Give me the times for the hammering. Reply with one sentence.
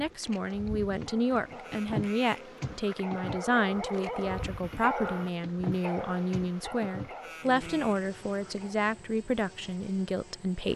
You can't hear the hammering here.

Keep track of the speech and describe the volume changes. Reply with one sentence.
The loudness of the speech stays about the same.